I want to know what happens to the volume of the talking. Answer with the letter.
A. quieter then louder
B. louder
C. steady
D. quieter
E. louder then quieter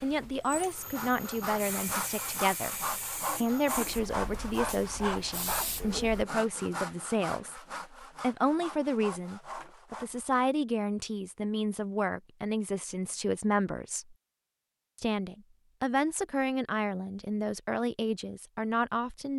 C.